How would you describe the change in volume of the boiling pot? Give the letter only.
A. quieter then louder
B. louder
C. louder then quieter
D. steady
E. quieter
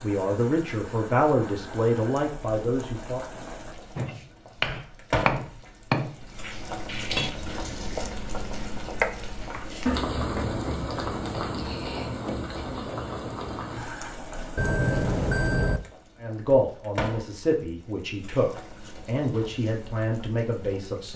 C.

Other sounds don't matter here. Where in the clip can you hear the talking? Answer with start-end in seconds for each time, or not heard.
0.0-3.2, 16.2-21.1.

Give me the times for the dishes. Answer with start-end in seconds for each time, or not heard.
not heard.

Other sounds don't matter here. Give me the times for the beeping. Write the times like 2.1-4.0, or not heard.
14.6-15.8.